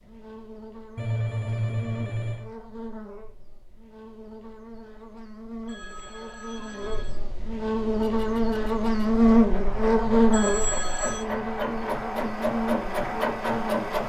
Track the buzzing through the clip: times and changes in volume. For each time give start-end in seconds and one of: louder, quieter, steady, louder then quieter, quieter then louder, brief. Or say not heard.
0.0-13.9 louder then quieter.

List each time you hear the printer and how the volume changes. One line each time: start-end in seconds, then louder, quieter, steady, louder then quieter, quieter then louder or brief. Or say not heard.
7.8-14.0 louder.